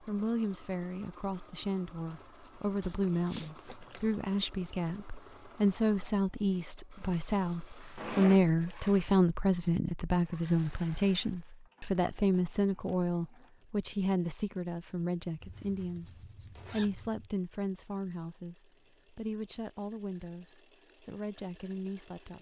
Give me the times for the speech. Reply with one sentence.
The speech can be heard from 0.0 to 22.3 s.